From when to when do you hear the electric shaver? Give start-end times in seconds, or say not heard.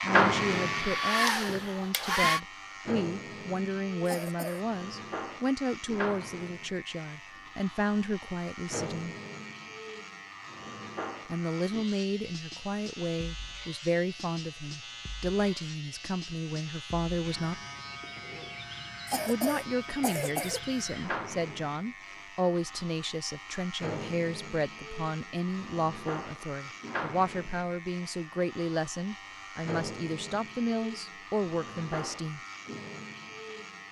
0.0-33.8.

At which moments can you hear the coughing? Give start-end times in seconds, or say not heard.
4.0-4.7, 19.1-20.8.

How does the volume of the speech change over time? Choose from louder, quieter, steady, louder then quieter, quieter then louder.
steady.